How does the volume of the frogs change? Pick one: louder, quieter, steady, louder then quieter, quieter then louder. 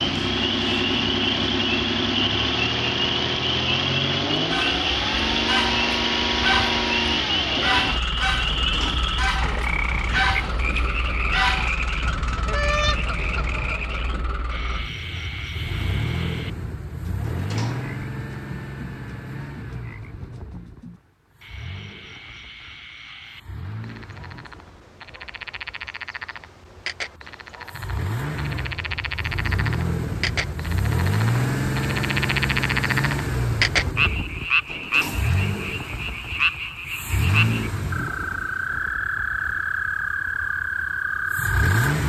quieter then louder.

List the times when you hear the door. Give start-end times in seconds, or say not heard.
8.4-9.1, 17.2-17.9, 34.6-35.4.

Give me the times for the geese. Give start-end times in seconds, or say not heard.
4.3-13.9.